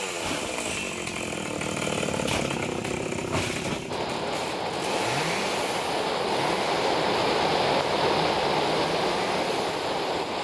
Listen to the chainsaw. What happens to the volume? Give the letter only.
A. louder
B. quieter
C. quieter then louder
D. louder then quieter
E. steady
B.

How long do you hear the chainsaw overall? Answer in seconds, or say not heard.
10 s.